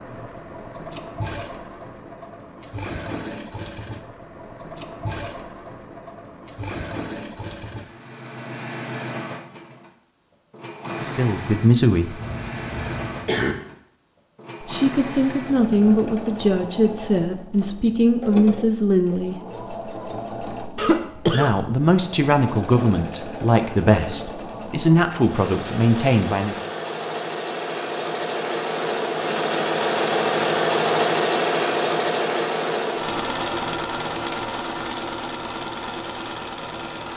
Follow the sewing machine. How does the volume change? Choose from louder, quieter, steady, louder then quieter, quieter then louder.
louder.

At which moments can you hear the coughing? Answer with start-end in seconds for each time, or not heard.
12.2-13.6, 20.8-21.6.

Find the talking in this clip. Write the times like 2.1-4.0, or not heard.
11.0-12.2, 14.6-19.4, 21.3-26.6.